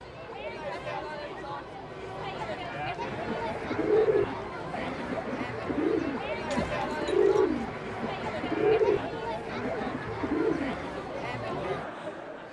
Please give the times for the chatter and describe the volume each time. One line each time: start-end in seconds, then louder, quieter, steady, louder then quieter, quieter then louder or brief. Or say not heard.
0.0-12.4 steady.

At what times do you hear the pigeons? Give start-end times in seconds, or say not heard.
3.0-10.9.